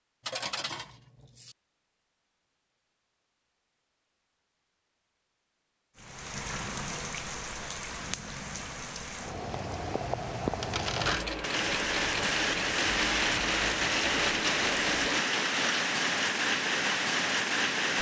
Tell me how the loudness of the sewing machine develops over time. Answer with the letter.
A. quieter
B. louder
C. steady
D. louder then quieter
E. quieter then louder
C.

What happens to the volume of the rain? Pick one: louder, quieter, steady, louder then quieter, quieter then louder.
louder.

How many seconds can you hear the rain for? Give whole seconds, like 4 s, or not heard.
12 s.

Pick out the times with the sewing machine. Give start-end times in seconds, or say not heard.
11.0-15.2.